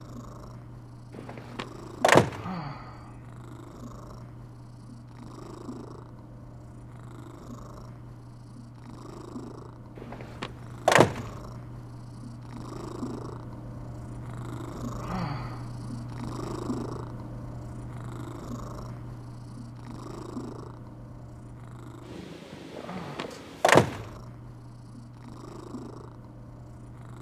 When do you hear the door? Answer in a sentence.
The door can be heard from 1.1 to 2.5 s, from 10.0 to 11.3 s and from 22.8 to 24.1 s.